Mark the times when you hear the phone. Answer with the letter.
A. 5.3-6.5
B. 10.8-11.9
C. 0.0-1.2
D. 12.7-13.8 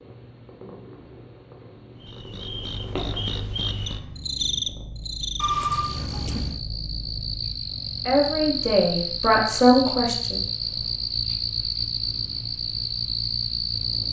A.